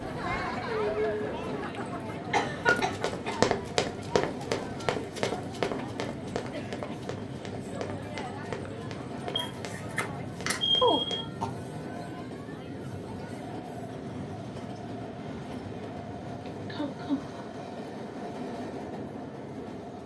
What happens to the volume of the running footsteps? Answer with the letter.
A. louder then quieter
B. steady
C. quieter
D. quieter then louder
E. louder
C.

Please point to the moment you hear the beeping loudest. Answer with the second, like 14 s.
11 s.